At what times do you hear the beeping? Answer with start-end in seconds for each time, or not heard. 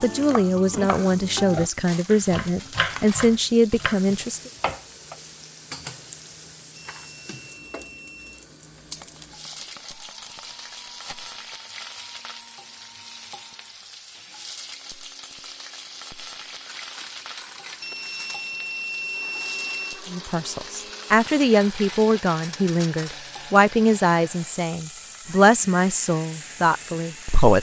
6.8-8.4, 17.8-20.0.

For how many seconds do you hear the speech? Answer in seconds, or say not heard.
12 s.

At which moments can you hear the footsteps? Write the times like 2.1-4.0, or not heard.
not heard.